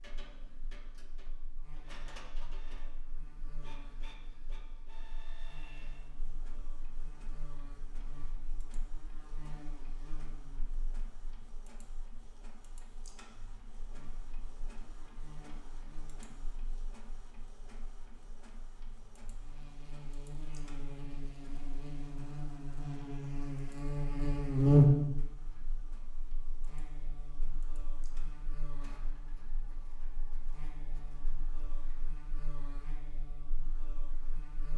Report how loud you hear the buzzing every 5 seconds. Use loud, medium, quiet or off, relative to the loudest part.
quiet, quiet, quiet, quiet, loud, quiet, quiet.